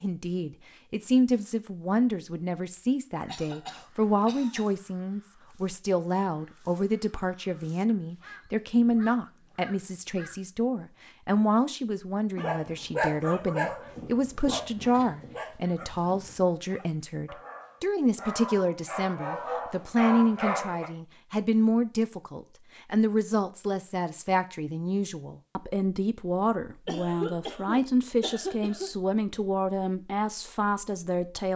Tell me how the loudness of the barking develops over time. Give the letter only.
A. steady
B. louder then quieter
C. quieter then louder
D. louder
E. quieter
C.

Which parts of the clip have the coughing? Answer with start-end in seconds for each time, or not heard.
3.2-4.8, 14.8-15.3, 26.9-28.9.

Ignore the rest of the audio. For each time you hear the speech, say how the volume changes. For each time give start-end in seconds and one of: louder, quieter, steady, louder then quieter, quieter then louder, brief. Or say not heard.
0.0-31.5 steady.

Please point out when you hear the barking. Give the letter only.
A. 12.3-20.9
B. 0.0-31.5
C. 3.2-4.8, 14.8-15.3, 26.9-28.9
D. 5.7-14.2
A.